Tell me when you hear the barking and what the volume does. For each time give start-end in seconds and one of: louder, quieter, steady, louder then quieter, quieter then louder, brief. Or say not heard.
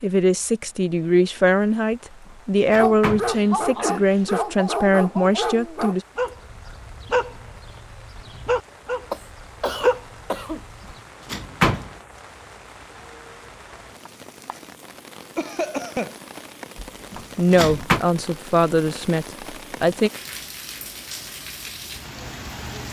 2.8-11.0 quieter.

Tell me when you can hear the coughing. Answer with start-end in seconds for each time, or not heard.
3.3-4.4, 9.1-10.6, 15.3-16.1.